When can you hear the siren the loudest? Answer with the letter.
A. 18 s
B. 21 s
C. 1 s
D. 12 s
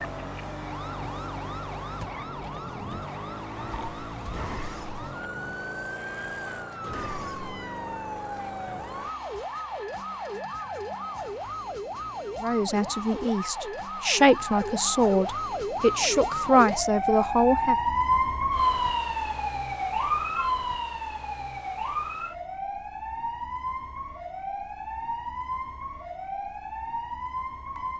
A.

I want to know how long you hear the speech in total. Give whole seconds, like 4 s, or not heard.
5 s.